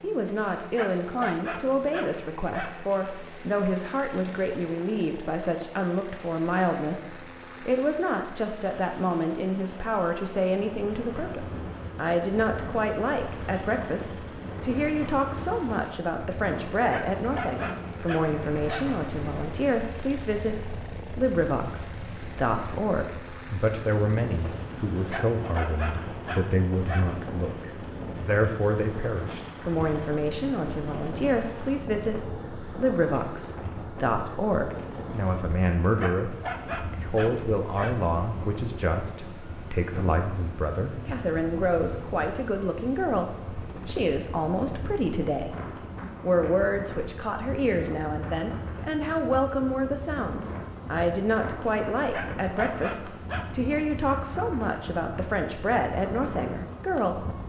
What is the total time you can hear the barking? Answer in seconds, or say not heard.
9 s.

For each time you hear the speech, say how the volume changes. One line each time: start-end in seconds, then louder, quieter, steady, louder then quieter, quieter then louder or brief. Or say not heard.
0.0-45.5 steady
46.2-57.4 steady.